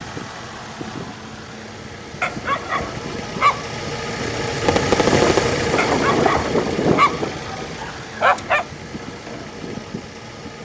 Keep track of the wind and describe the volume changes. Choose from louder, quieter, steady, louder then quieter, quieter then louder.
louder then quieter.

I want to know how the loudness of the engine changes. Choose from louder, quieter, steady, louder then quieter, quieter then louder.
louder then quieter.